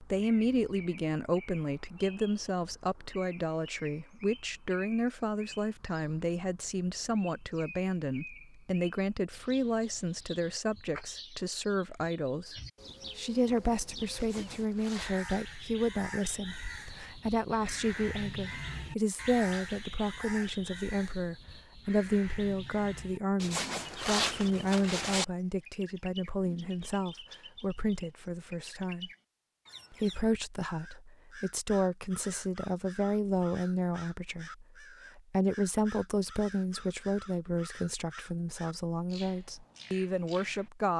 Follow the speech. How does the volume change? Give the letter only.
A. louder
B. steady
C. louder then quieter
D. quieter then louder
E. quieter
B.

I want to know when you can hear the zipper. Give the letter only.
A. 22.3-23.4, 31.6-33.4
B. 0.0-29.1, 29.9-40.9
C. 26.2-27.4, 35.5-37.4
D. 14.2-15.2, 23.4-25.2
D.